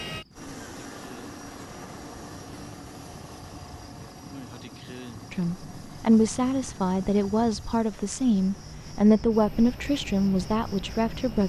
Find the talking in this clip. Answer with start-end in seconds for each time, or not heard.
5.3-11.4.